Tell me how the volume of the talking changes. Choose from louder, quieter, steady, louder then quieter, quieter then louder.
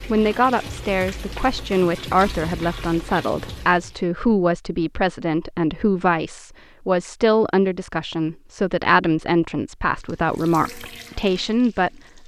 steady.